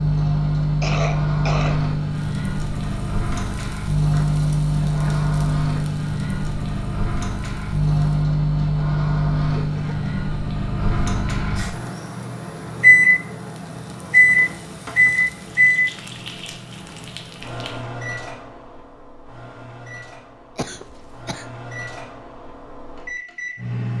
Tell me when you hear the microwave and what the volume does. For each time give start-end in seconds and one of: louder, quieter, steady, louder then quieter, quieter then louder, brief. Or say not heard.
0.0-23.9 quieter.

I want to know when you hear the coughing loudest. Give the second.
1 s.